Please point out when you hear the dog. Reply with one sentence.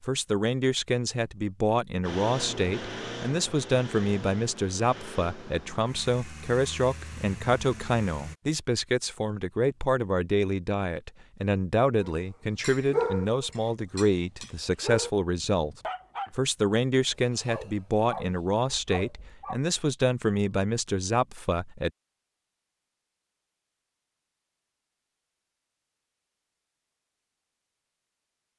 You can hear the dog from 12.0 to 19.6 s.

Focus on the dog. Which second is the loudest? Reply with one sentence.
The volume of the dog peaks at 13 seconds.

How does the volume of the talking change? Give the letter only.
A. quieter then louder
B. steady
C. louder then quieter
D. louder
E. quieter
B.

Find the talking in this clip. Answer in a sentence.
The talking can be heard from 0.0 to 21.9 s.